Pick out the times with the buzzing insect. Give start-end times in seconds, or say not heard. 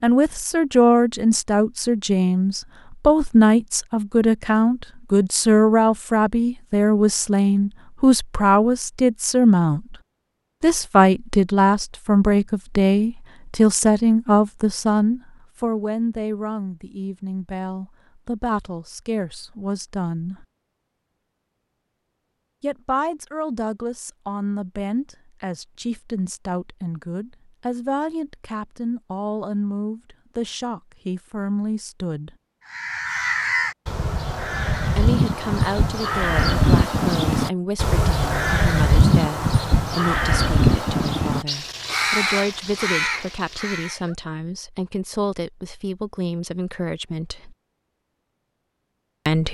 not heard.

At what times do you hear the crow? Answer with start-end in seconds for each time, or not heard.
32.6-44.1.